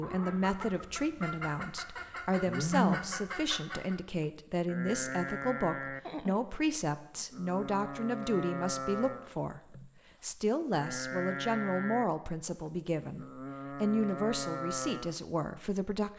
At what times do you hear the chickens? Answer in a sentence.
The chickens can be heard from 0.0 to 4.0 s.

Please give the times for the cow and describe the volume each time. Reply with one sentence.
You can hear the cow from 4.2 to 15.2 s, at a steady volume.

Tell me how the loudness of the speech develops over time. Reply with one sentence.
The volume of the speech stays about the same.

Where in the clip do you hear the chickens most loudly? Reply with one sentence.
The volume of the chickens peaks at 3 seconds.